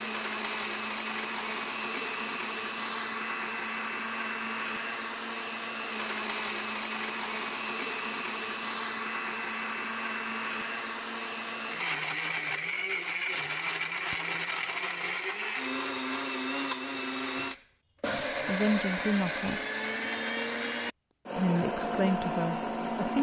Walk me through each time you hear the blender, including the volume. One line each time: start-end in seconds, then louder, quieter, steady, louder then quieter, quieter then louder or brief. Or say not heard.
0.0-23.1 steady.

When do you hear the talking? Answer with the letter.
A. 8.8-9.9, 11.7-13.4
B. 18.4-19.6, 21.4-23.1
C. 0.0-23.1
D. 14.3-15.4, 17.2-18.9
B.